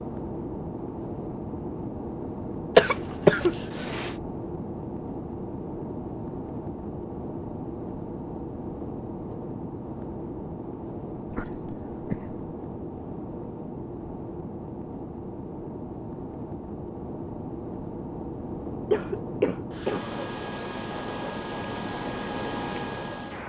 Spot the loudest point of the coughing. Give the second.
3 s.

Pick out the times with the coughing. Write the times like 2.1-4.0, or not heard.
2.8-4.1, 11.3-12.4, 18.9-20.1.